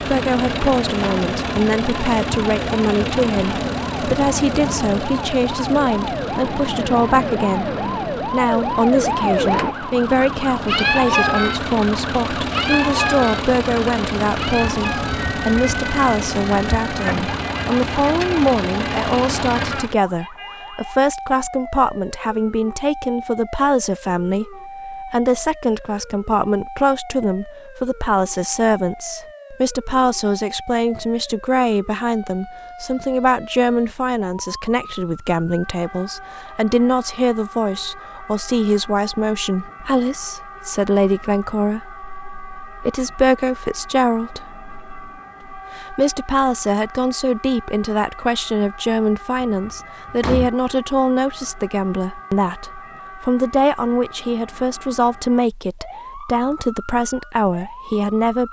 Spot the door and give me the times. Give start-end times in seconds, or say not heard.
49.4-50.5.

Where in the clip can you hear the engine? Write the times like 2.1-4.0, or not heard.
0.0-19.9.